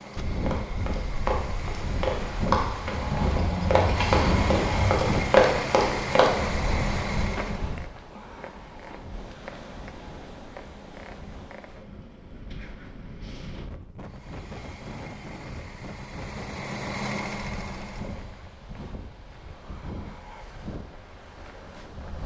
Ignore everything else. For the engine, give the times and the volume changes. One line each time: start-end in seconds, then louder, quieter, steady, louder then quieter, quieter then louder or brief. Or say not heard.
0.0-7.7 louder
14.0-18.6 louder then quieter.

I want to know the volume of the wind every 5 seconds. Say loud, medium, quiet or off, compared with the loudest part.
loud, loud, medium, medium, medium.